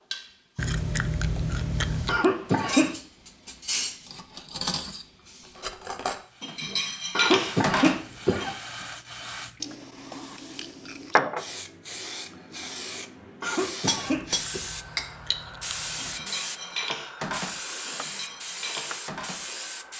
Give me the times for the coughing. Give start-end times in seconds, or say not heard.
2.0-3.0, 7.2-8.6, 13.4-14.6.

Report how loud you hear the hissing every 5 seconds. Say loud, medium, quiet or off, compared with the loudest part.
quiet, medium, loud, loud.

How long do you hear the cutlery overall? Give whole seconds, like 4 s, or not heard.
12 s.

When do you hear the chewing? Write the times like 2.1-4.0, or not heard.
0.6-2.2, 9.6-11.2, 14.1-16.2.